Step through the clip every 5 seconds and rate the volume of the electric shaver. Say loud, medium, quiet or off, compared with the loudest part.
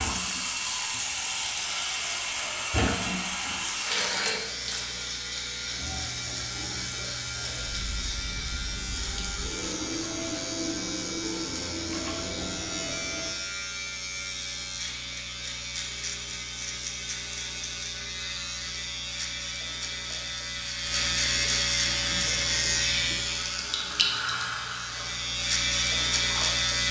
quiet, medium, medium, medium, loud, loud.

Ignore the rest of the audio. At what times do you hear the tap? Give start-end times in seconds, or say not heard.
0.0-13.3, 21.8-26.6.